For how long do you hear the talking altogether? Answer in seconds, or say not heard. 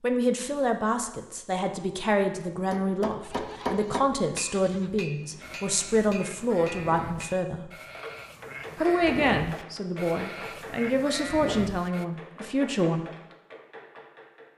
12 s.